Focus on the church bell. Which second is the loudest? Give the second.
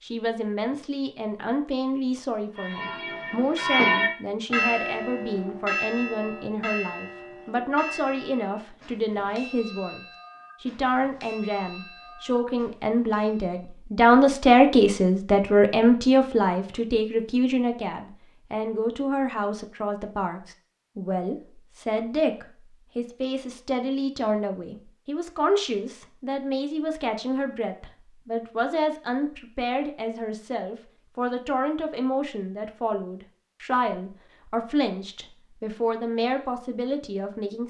4 s.